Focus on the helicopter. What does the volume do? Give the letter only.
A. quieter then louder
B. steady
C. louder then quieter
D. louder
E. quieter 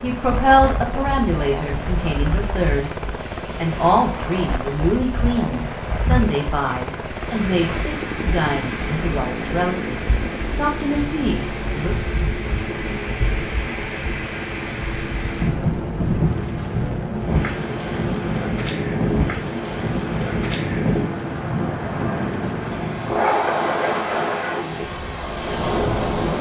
B.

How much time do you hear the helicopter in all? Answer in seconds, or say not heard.
26 s.